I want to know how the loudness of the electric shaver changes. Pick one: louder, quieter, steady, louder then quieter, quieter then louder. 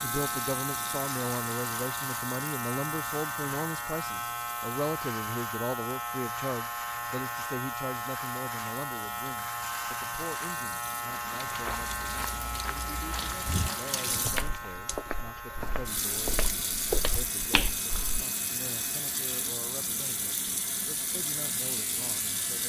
quieter.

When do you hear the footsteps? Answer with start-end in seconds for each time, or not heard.
11.4-18.2.